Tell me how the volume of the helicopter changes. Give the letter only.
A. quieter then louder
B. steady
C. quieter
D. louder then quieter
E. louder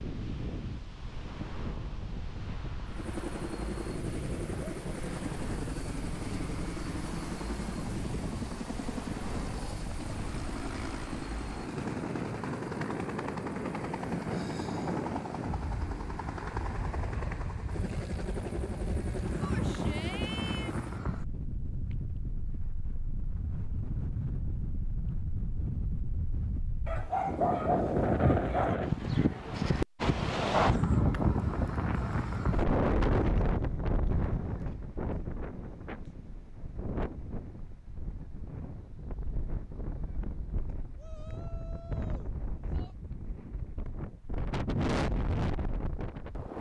B.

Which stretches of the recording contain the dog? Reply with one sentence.
The dog can be heard from 26.9 to 28.8 s.